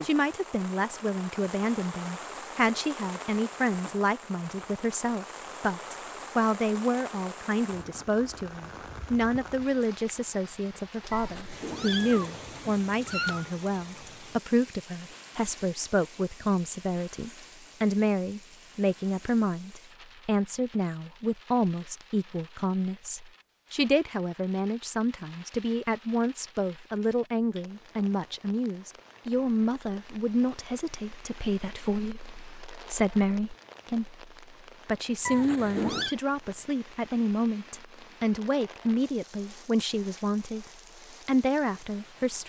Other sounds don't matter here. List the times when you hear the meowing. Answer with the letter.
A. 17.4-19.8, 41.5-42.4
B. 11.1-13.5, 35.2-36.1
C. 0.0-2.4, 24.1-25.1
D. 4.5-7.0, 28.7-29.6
B.